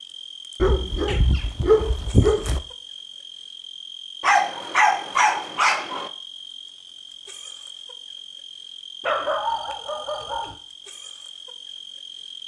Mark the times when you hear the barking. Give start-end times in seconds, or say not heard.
0.6-2.6, 4.2-6.1, 9.0-10.6.